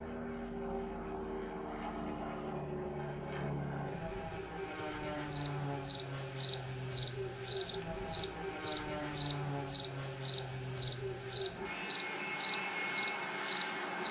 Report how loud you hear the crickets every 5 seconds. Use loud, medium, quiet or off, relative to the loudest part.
off, loud, loud.